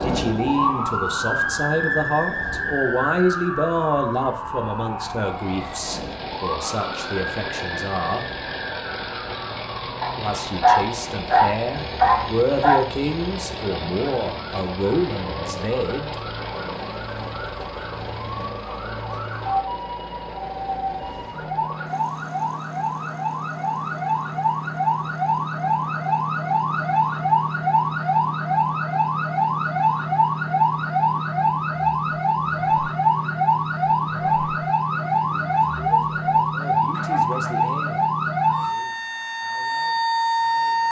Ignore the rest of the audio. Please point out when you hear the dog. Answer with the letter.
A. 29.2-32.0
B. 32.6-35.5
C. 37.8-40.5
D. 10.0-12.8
D.